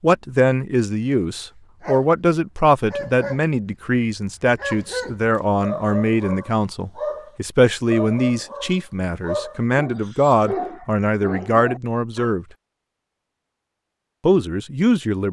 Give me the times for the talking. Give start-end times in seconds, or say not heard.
0.0-12.4, 14.2-15.2.